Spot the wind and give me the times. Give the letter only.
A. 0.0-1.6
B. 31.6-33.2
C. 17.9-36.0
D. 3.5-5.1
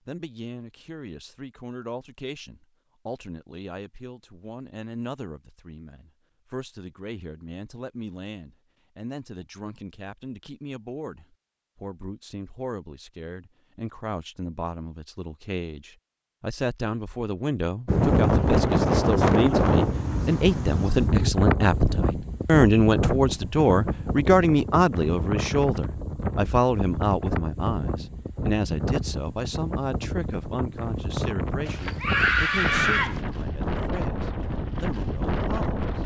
C.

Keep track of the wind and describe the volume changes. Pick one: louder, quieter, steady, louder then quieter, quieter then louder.
quieter.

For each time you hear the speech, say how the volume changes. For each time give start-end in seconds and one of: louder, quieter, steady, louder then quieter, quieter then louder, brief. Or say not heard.
0.1-36.0 louder then quieter.